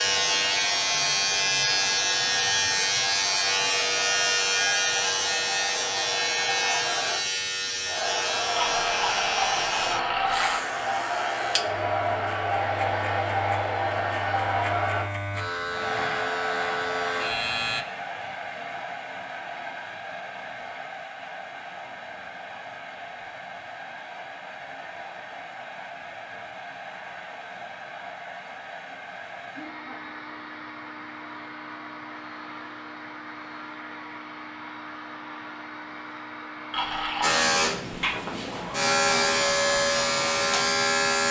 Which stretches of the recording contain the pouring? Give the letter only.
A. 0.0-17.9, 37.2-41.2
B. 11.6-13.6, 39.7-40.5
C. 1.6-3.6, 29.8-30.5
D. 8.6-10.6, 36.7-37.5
D.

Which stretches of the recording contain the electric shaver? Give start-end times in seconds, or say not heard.
0.0-17.9, 37.2-41.2.